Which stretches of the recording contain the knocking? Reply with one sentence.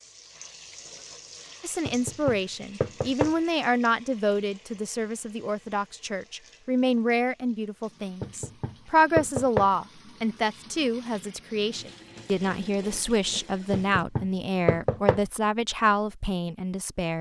The knocking can be heard from 1.9 to 3.4 s, from 8.2 to 9.7 s and from 13.7 to 15.2 s.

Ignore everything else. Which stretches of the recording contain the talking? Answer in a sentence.
You can hear the talking from 1.6 to 17.1 s.